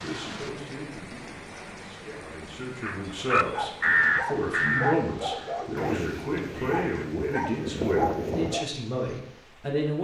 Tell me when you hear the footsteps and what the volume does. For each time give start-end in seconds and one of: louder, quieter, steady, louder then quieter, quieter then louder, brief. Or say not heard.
not heard.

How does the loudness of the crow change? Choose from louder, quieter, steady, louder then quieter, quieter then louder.
quieter then louder.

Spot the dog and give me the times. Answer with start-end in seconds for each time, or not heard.
3.5-8.7.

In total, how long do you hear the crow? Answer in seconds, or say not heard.
6 s.